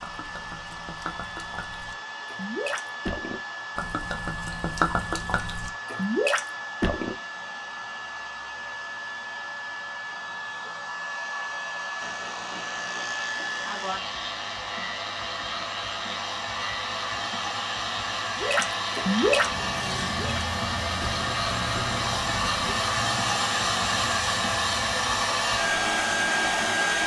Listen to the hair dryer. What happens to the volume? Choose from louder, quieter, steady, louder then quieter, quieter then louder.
louder.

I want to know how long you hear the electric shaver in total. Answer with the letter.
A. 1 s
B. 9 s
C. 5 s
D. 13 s
D.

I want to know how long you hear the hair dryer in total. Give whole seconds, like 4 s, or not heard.
27 s.